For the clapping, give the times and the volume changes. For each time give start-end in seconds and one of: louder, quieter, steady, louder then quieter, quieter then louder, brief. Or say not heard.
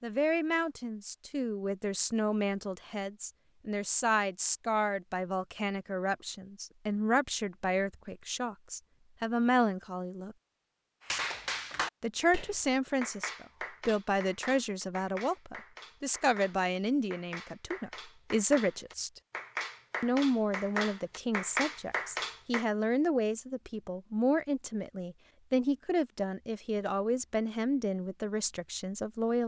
11.1-22.6 quieter then louder.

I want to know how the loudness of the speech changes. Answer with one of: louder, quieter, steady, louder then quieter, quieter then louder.
steady.